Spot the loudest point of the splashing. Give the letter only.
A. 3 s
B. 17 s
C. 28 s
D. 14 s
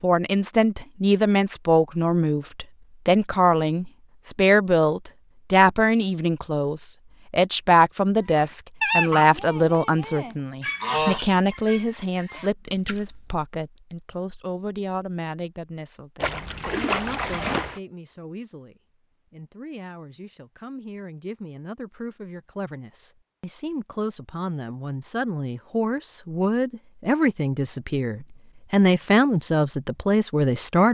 B.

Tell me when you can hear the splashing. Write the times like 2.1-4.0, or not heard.
12.8-13.3, 16.2-17.8.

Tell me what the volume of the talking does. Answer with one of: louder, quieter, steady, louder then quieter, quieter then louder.
quieter then louder.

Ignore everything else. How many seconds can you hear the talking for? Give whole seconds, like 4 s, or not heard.
31 s.